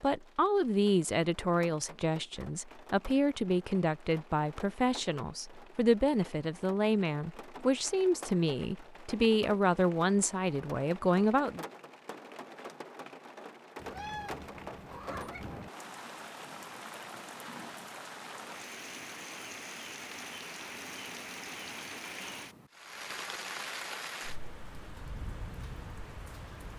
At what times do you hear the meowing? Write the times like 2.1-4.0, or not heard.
13.8-15.7.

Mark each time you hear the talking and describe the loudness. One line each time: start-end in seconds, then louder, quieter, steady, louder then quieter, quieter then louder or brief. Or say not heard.
0.0-11.7 steady.